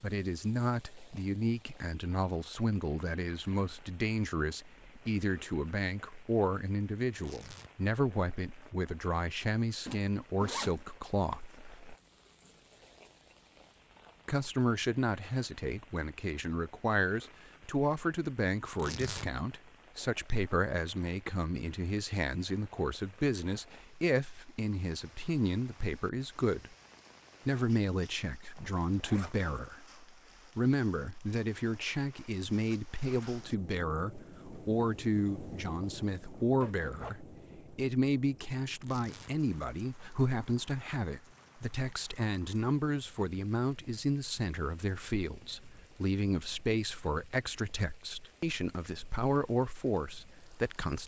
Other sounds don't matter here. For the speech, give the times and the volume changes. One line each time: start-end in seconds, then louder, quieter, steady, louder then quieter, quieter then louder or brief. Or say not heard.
0.0-11.8 steady
14.2-26.8 steady
27.4-51.0 steady.